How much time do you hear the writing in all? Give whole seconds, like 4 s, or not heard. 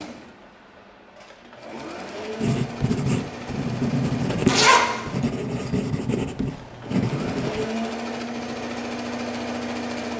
5 s.